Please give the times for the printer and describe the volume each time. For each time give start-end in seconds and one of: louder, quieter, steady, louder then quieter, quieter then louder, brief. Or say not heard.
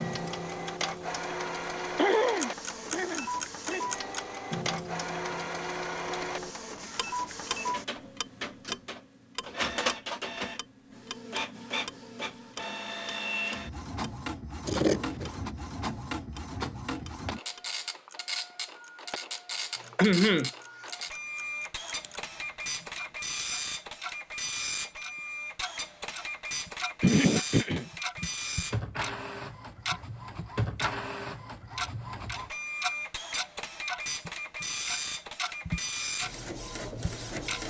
0.0-37.6 steady.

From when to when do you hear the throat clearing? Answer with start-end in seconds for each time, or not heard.
1.9-3.9, 19.9-20.5, 27.0-27.9.